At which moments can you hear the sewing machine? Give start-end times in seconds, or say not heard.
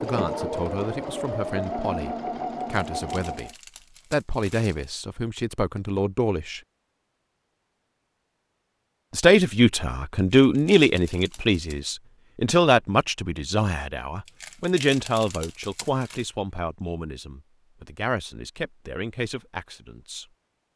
0.0-3.5.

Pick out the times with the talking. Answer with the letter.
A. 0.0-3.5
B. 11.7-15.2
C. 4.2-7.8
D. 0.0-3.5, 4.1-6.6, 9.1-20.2
D.